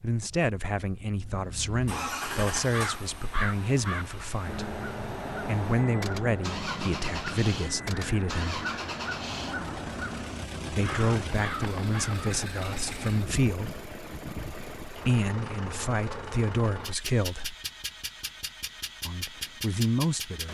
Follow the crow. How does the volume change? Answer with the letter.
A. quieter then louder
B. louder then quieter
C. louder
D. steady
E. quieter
D.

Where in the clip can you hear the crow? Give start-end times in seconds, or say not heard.
2.7-12.4.